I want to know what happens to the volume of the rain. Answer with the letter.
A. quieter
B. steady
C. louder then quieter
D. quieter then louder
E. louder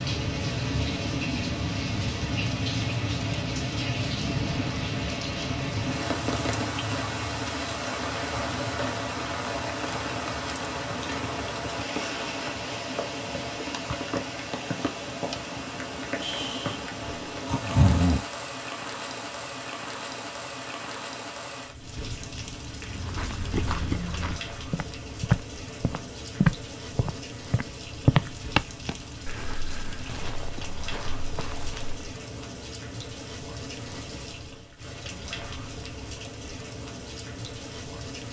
A.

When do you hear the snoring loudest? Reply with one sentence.
The volume of the snoring peaks at 18 seconds.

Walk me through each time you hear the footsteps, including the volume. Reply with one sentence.
The footsteps can be heard from 22.8 to 32.1 s, getting louder then quieter.